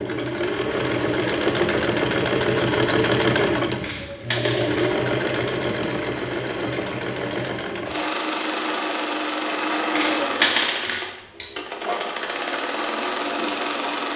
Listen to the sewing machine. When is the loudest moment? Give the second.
3 s.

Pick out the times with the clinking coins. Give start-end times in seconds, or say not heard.
3.8-5.0, 9.9-11.5.